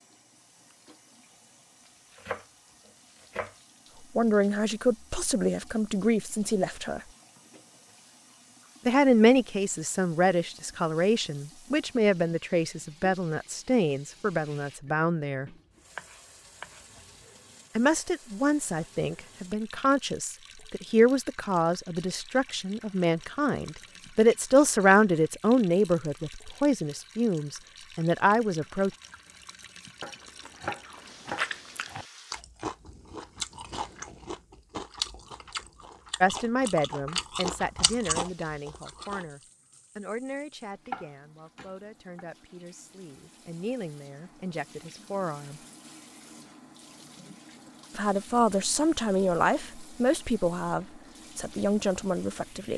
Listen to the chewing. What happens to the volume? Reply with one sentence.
The volume of the chewing stays about the same.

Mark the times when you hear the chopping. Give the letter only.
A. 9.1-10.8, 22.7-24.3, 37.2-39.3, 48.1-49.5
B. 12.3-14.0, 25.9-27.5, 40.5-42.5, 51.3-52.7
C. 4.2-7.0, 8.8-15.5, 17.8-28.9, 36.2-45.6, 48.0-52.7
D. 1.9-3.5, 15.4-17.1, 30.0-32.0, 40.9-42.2
D.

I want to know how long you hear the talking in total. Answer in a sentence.
The talking can be heard for 35 seconds in total.